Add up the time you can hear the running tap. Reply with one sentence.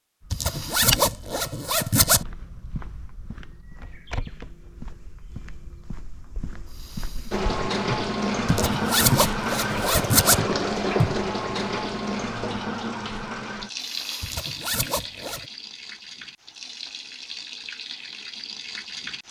The running tap can be heard for 12 seconds in total.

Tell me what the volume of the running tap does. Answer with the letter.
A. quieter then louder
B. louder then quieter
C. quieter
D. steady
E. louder
C.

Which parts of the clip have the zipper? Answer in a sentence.
The zipper can be heard from 0.3 to 2.2 s, from 8.4 to 10.4 s and from 14.2 to 15.4 s.